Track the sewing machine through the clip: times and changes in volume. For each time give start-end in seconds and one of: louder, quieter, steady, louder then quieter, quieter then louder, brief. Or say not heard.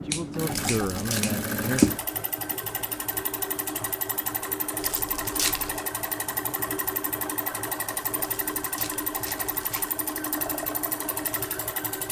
0.0-12.0 quieter.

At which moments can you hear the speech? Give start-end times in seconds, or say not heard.
0.0-1.8.